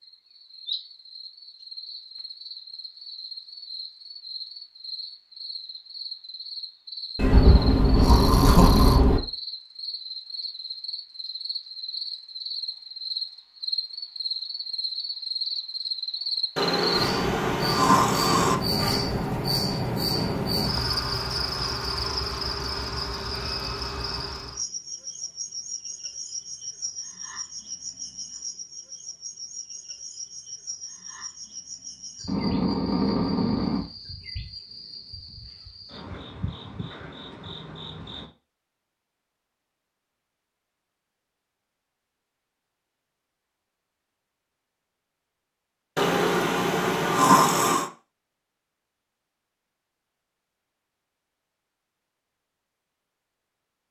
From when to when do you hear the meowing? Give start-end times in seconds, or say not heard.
not heard.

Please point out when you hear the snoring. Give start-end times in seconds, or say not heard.
7.2-9.2, 16.6-18.6, 32.2-33.9, 46.0-47.9.